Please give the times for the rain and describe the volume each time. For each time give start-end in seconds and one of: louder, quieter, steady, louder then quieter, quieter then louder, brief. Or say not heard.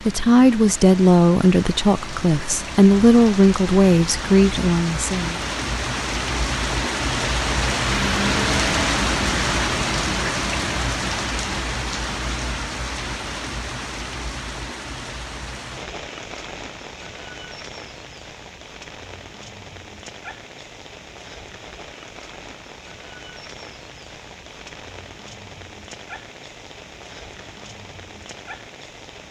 0.0-29.2 louder then quieter.